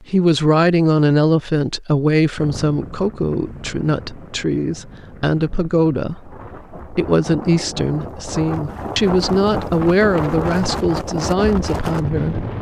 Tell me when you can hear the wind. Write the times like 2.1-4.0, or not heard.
2.4-12.5.